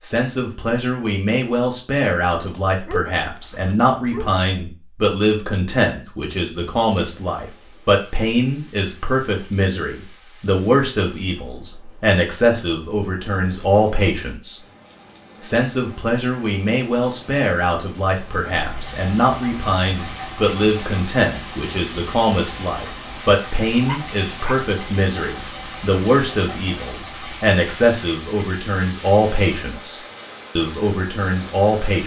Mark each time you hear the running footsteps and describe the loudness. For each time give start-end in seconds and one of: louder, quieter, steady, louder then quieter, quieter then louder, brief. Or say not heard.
not heard.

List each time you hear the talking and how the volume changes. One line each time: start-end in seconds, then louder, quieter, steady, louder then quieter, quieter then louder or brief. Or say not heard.
0.0-14.6 steady
15.4-29.9 steady
30.6-32.0 brief.